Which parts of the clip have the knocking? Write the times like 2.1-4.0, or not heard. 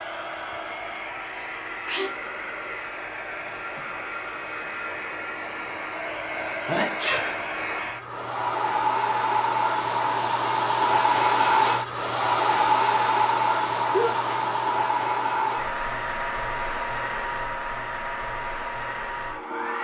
not heard.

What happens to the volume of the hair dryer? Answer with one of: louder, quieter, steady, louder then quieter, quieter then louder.
louder then quieter.